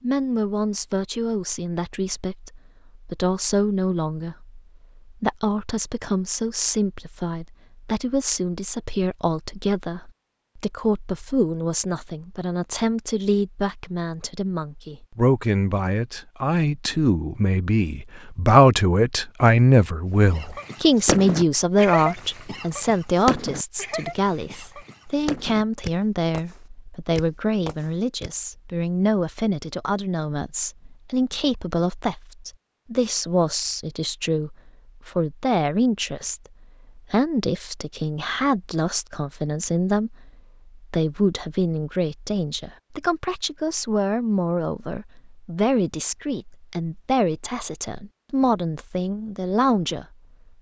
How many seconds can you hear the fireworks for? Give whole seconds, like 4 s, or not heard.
8 s.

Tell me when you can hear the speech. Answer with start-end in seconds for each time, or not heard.
0.0-50.0.